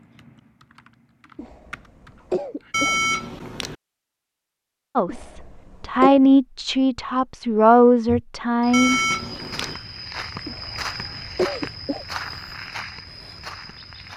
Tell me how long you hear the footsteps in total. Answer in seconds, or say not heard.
6 s.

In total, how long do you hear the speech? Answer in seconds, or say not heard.
4 s.